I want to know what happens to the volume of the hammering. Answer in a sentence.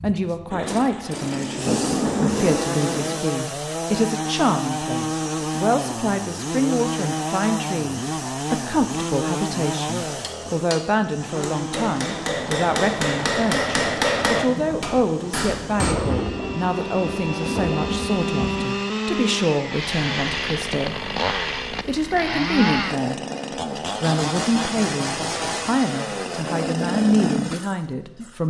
The loudness of the hammering goes up, then down.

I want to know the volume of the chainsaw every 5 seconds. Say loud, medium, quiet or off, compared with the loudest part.
loud, loud, medium, loud, loud, loud.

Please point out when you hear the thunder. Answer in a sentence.
You can hear the thunder from 0.5 to 3.2 s and from 14.4 to 18.8 s.